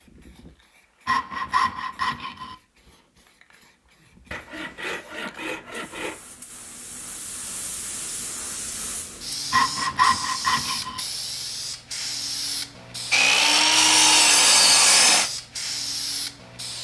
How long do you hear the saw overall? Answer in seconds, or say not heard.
7 s.